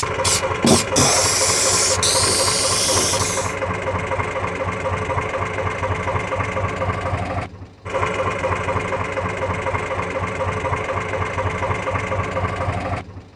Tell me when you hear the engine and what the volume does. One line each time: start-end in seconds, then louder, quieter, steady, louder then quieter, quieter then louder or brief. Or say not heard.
0.0-13.3 steady.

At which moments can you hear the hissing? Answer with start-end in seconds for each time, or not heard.
0.0-3.5.